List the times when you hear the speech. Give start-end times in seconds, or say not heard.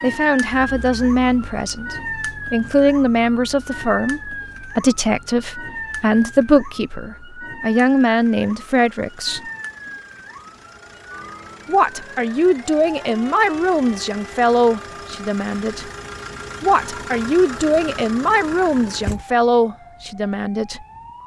0.0-9.4, 11.7-15.8, 16.6-20.9.